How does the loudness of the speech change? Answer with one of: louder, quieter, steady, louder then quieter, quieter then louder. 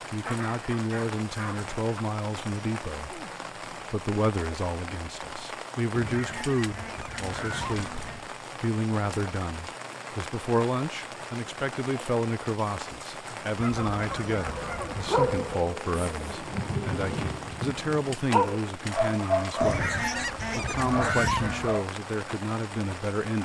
steady.